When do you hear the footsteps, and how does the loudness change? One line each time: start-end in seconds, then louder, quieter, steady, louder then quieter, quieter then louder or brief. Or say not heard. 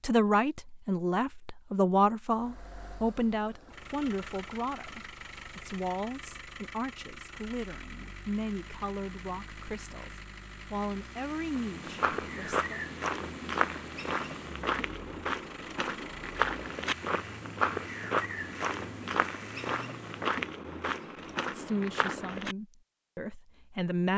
11.6-22.6 steady.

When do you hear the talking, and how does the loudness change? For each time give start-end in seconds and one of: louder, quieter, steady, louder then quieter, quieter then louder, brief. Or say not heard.
0.0-12.8 quieter
21.5-24.1 brief.